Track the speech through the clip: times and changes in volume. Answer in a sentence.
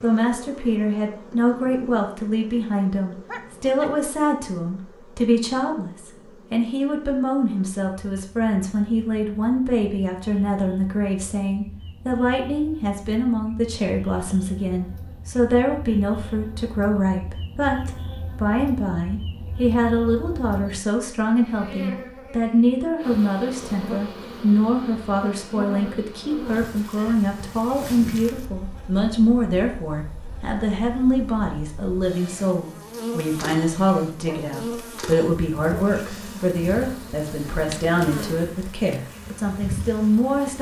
You can hear the speech from 0.0 to 40.5 s, at a steady volume.